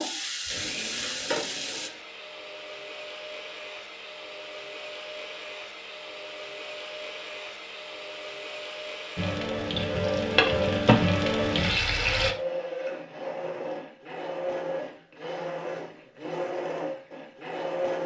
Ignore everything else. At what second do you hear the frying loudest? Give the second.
11 s.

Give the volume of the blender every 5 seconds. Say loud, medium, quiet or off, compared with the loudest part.
medium, medium, loud, loud.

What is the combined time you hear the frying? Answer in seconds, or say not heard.
5 s.